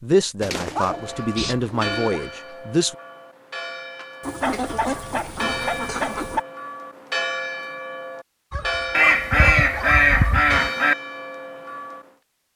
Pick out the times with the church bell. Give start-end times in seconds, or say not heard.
0.8-12.1.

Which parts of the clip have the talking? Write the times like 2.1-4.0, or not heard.
0.0-3.0.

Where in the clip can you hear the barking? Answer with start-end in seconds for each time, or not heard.
0.7-2.1, 4.4-6.4, 8.5-10.6.